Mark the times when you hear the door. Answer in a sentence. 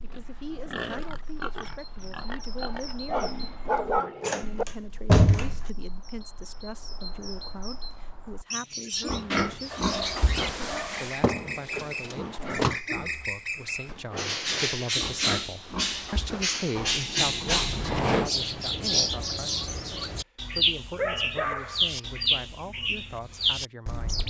The door can be heard from 4.2 to 5.6 s, from 11.2 to 12.8 s and from 16.8 to 18.3 s.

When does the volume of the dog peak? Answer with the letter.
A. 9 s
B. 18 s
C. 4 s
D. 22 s
C.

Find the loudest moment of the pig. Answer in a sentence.
The volume of the pig peaks at 9 seconds.